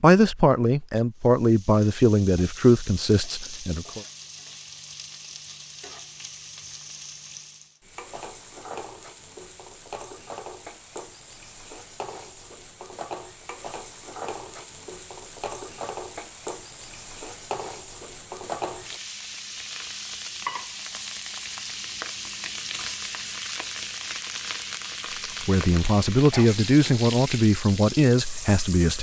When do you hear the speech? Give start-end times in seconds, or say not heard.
0.0-4.0, 25.4-28.9.